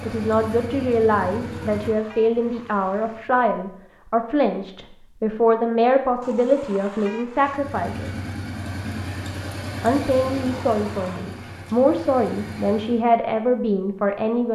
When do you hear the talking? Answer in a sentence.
The talking can be heard from 0.0 to 8.1 s and from 9.8 to 14.4 s.